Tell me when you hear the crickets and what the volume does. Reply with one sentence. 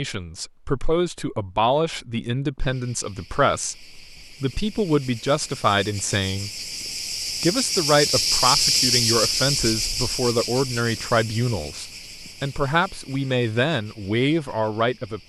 The crickets can be heard from 2.5 to 15.2 s, getting louder then quieter.